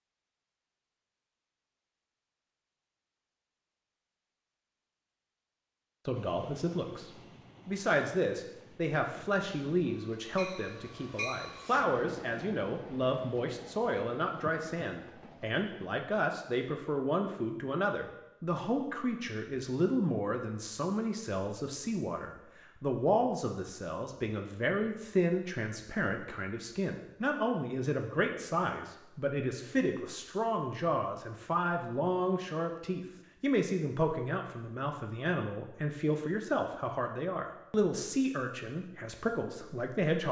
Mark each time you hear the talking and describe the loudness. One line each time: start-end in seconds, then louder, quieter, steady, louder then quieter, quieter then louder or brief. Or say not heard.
6.0-40.2 steady.